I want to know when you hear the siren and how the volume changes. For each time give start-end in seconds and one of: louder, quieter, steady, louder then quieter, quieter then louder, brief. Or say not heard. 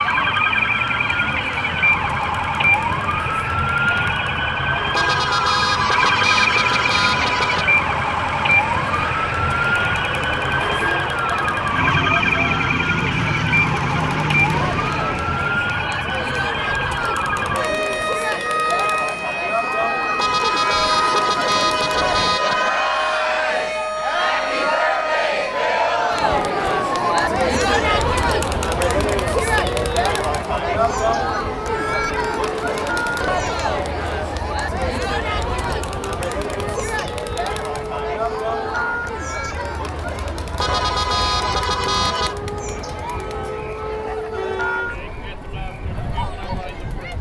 0.0-47.1 quieter.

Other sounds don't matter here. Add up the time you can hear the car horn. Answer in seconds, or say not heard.
7 s.